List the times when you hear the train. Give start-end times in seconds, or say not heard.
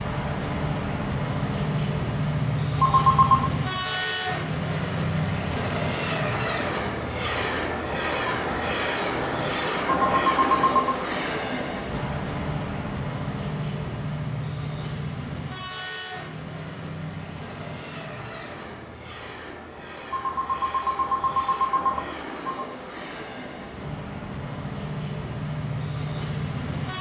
0.0-26.9.